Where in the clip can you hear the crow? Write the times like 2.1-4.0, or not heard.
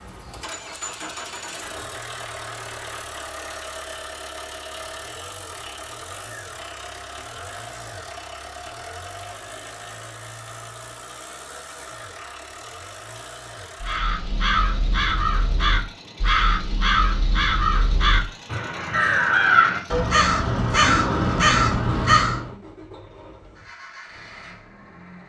13.8-22.6.